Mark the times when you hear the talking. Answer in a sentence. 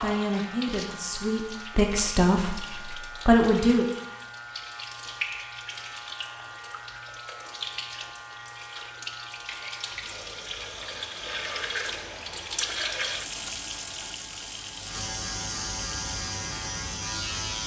You can hear the talking from 0.0 to 2.5 s and from 3.2 to 3.9 s.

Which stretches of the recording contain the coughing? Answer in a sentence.
The coughing can't be heard in this clip.